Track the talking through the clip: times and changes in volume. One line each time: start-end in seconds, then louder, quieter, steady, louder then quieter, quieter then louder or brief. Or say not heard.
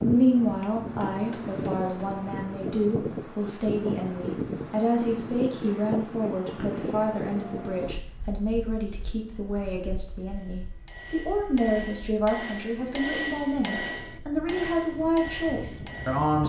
0.0-16.4 steady.